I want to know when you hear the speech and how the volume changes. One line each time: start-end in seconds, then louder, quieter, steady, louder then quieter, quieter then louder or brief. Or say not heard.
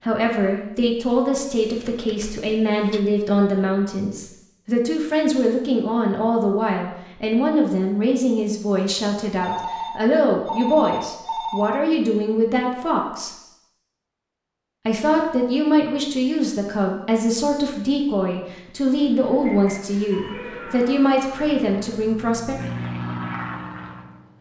0.0-13.3 steady
14.8-22.6 steady.